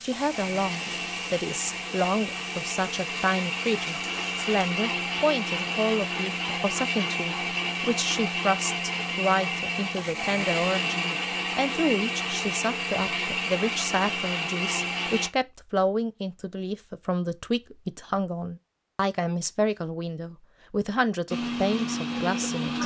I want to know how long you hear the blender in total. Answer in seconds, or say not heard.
17 s.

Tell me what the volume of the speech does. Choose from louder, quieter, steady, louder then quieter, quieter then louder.
steady.